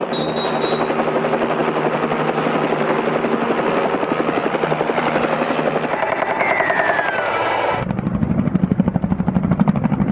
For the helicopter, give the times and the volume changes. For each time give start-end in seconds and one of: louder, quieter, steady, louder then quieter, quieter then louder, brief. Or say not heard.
0.0-10.0 steady.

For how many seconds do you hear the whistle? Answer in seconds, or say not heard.
2 s.